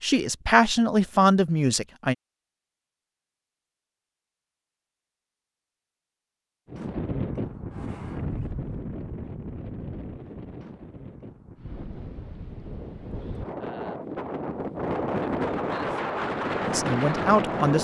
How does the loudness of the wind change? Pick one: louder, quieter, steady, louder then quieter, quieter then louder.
quieter then louder.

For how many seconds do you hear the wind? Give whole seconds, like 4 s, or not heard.
11 s.